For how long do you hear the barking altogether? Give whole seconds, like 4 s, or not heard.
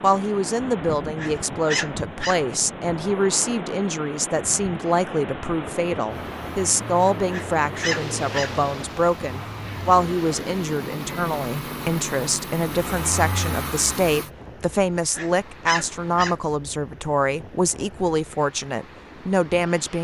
4 s.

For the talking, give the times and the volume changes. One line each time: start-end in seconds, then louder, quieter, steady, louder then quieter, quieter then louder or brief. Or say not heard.
0.0-19.9 steady.